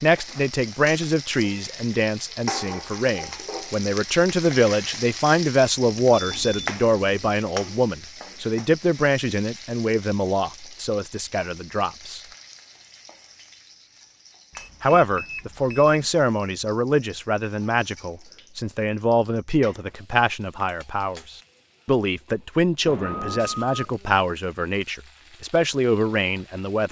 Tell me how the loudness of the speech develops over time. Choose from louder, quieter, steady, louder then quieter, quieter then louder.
steady.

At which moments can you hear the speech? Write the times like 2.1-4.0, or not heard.
0.0-12.2, 14.8-26.8.